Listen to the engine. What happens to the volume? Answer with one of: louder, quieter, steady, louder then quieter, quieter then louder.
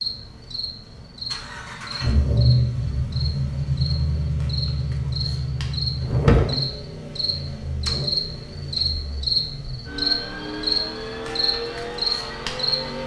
quieter.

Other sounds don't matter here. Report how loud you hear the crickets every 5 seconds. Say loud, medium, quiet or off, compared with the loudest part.
medium, loud, loud.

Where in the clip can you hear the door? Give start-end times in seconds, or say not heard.
5.7-6.5.